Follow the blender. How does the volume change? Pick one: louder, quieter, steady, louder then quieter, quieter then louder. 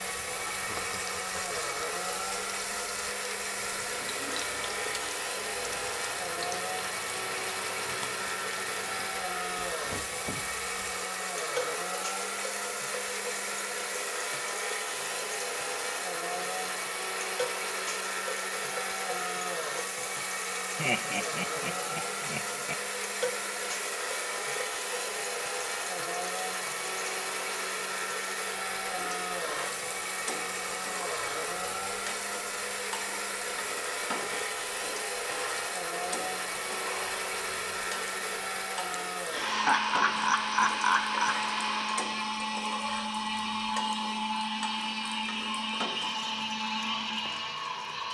steady.